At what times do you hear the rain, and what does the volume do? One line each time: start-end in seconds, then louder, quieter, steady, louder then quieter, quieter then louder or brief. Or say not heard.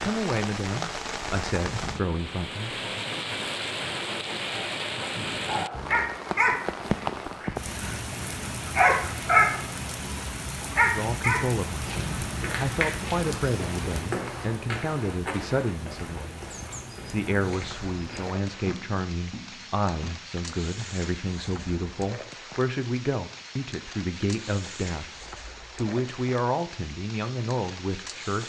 0.0-28.4 quieter.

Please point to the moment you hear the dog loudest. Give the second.
9 s.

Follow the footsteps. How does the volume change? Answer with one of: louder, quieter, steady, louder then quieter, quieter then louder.
quieter.